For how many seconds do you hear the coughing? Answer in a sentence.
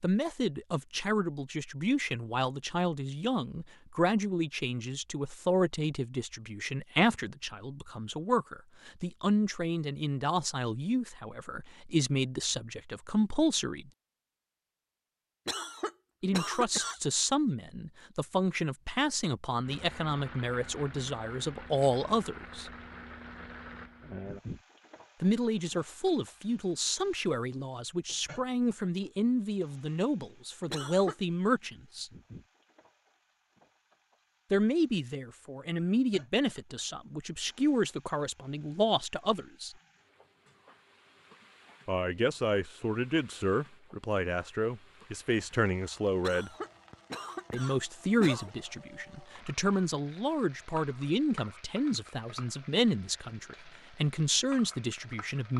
The coughing can be heard for 4 seconds in total.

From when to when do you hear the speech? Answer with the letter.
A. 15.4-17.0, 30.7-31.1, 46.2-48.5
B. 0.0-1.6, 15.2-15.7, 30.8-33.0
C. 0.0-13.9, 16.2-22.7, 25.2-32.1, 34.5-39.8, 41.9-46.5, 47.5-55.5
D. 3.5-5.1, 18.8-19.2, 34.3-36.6
C.